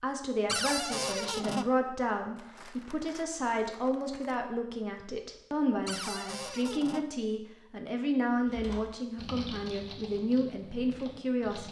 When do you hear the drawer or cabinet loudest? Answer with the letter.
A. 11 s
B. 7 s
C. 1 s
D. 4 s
C.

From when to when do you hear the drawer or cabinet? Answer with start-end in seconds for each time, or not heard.
0.5-1.6, 5.8-7.0.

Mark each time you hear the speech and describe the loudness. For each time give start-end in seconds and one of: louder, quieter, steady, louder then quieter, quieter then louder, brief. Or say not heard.
0.0-11.6 steady.